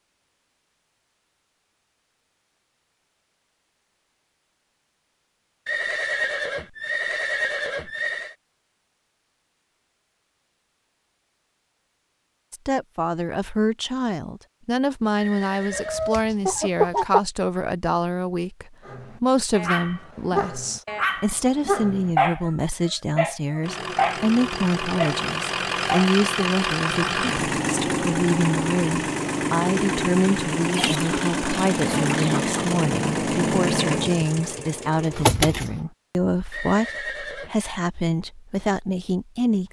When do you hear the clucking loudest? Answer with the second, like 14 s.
17 s.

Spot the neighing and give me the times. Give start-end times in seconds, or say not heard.
5.7-8.3, 15.2-16.0, 36.5-37.7.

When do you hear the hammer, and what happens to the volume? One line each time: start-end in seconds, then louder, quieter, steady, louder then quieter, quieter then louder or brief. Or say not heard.
not heard.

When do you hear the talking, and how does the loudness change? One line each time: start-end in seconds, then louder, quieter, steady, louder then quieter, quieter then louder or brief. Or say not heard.
12.5-39.6 steady.